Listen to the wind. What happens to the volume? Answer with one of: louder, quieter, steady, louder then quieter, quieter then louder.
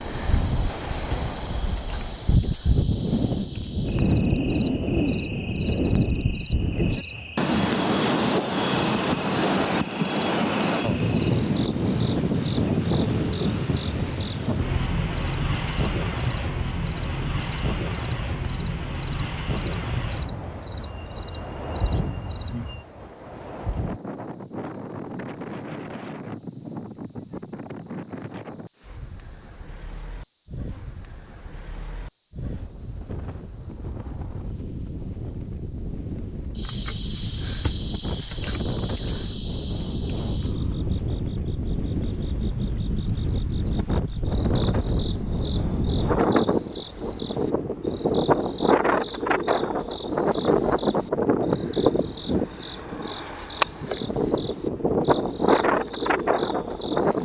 quieter then louder.